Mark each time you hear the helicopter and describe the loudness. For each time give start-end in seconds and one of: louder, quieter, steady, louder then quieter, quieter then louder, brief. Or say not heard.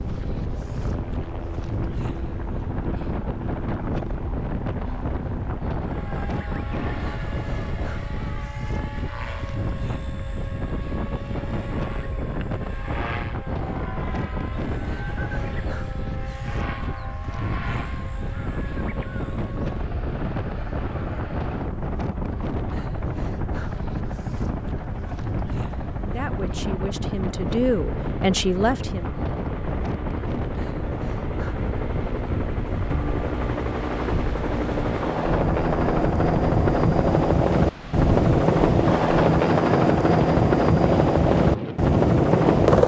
0.0-42.8 louder.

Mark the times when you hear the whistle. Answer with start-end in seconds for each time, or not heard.
not heard.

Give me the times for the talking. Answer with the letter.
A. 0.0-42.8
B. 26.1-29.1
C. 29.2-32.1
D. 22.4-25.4
B.